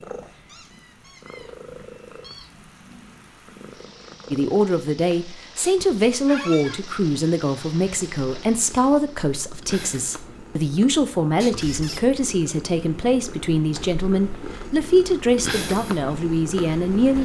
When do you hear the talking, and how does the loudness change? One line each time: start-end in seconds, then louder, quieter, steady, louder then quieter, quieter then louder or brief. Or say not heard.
4.3-17.2 steady.